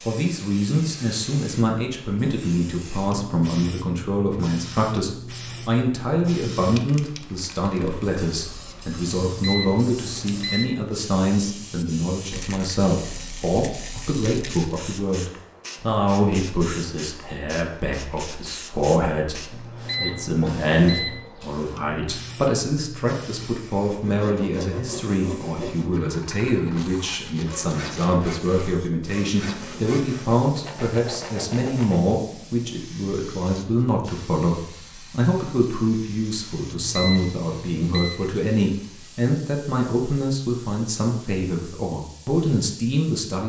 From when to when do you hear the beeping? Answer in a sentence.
You can hear the beeping from 9.2 to 10.8 s, from 19.5 to 21.2 s and from 36.6 to 38.2 s.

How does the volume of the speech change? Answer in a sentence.
The volume of the speech stays about the same.